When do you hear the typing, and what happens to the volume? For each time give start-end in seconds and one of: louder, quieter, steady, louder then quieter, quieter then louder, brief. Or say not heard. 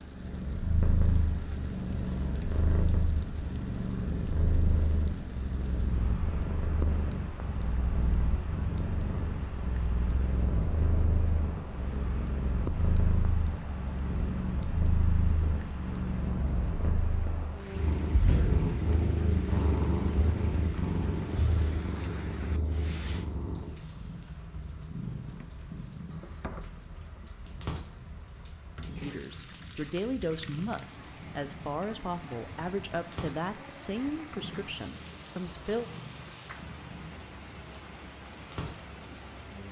not heard.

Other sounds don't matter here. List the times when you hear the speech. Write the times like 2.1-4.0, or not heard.
29.0-35.9.